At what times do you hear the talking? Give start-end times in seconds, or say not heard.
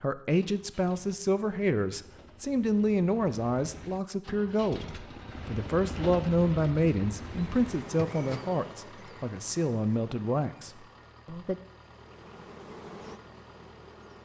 0.0-11.6.